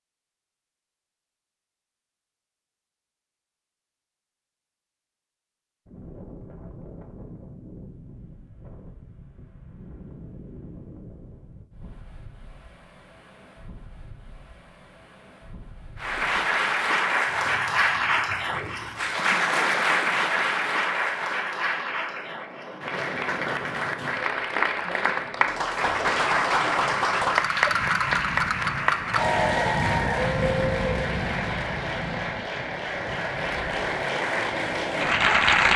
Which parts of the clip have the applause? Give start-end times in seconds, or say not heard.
15.9-35.7.